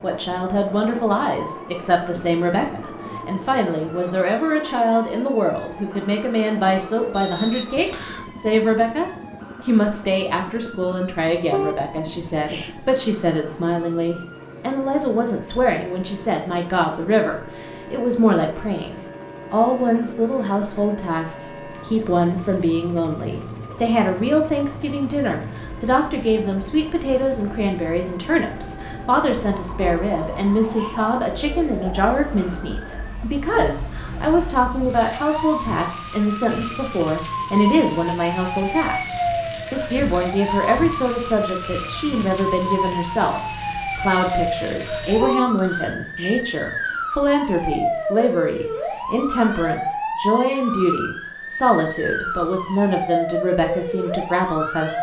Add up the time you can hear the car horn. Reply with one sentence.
The car horn can be heard for 4 seconds in total.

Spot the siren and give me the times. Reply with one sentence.
The siren can be heard from 0.0 to 54.9 s.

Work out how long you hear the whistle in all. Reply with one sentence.
The whistle can be heard for 2 seconds in total.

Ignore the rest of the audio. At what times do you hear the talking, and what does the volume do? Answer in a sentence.
The talking can be heard from 0.0 to 54.9 s, at a steady volume.